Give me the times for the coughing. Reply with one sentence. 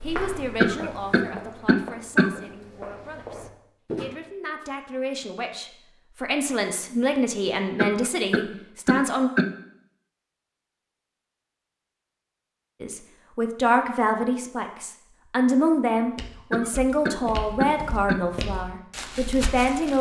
You can hear the coughing from 0.6 to 2.4 s, from 7.8 to 9.6 s and from 16.5 to 18.2 s.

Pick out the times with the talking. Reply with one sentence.
The talking can be heard from 0.0 to 9.3 s and from 12.8 to 19.9 s.